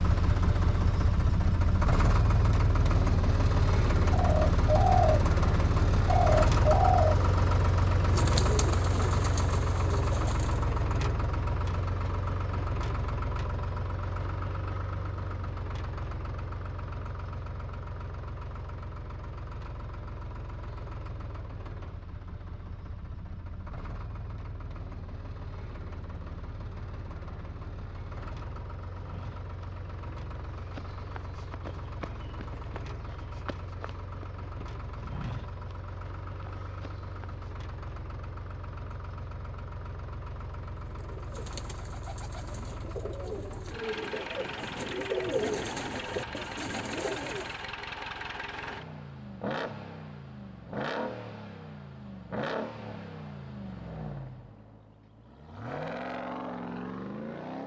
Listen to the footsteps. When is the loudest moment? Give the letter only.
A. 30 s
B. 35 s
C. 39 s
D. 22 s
B.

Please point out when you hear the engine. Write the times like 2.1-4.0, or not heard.
0.0-57.6.